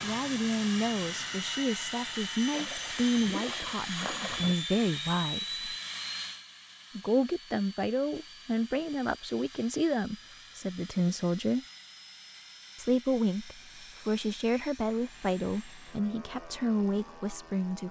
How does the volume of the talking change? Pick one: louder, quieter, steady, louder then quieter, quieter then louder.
steady.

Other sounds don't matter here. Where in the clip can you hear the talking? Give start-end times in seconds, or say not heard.
0.0-5.8, 7.0-11.7, 12.8-17.8.